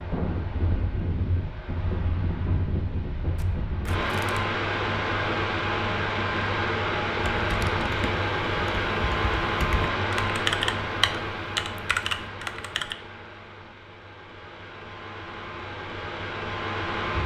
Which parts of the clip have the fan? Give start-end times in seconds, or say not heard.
0.0-17.2.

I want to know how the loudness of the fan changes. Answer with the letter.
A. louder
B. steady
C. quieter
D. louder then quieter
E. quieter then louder
D.